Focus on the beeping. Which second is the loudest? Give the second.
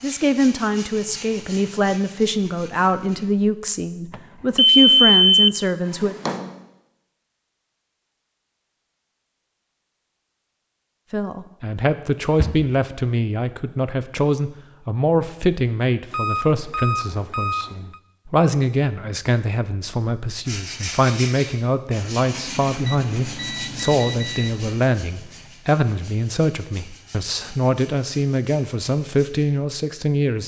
5 s.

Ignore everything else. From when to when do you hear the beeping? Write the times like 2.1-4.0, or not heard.
4.1-5.5, 16.1-18.0, 22.9-24.6.